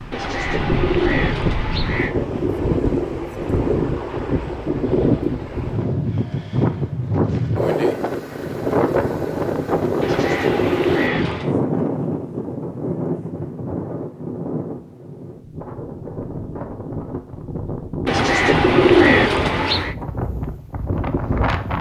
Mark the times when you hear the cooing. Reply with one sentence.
The cooing can be heard from 0.1 to 2.1 s, from 10.0 to 11.6 s and from 18.1 to 19.9 s.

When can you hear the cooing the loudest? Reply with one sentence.
The loudest moment of the cooing is at 19 seconds.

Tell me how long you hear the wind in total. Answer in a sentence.
You can hear the wind for 22 seconds altogether.